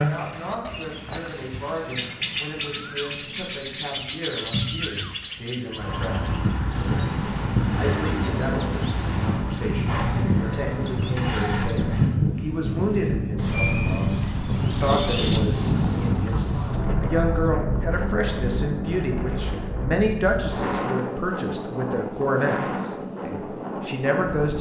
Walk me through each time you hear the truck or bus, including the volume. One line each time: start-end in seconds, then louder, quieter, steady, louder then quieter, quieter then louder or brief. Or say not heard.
5.7-12.2 steady.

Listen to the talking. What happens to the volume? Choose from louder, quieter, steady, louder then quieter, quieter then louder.
louder.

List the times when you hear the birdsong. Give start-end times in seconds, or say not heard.
0.0-17.6.